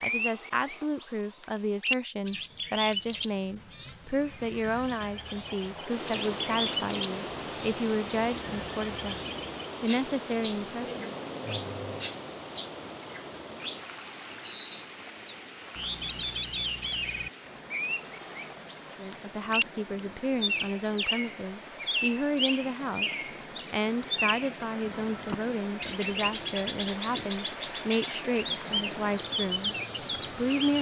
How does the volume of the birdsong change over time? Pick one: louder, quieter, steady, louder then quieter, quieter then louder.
steady.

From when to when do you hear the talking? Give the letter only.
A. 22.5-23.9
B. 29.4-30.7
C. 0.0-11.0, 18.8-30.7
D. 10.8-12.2
C.